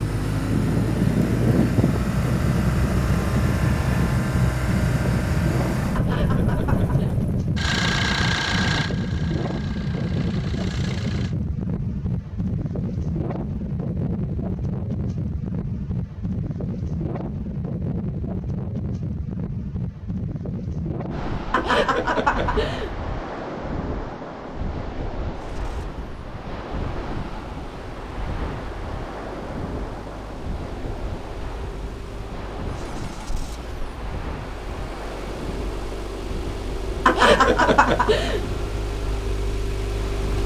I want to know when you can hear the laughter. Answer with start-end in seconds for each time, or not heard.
6.0-7.2, 21.5-22.9, 37.0-38.5.